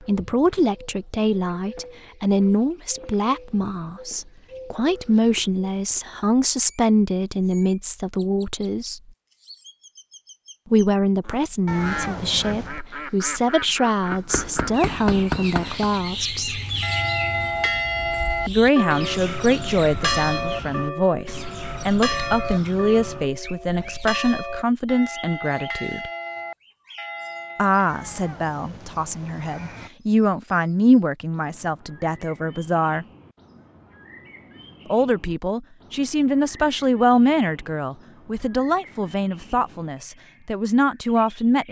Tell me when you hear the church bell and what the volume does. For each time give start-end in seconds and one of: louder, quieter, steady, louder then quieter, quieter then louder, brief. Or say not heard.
16.8-27.8 quieter.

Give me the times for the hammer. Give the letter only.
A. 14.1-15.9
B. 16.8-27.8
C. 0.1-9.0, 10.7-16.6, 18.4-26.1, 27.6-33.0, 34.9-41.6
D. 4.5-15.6
A.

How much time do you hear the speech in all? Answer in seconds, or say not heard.
35 s.